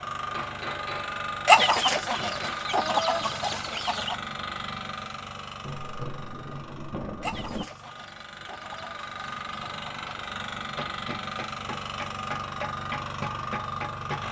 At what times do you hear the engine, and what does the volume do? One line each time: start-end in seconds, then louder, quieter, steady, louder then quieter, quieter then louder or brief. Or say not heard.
0.0-14.2 quieter then louder.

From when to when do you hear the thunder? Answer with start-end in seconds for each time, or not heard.
5.6-7.7.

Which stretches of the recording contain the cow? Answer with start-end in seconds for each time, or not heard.
not heard.